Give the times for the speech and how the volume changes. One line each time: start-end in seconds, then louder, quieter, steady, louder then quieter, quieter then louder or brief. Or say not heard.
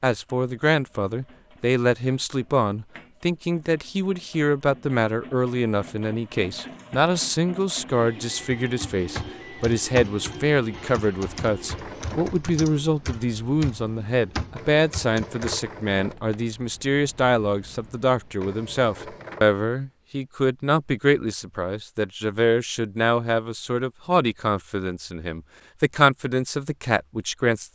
0.0-27.7 steady.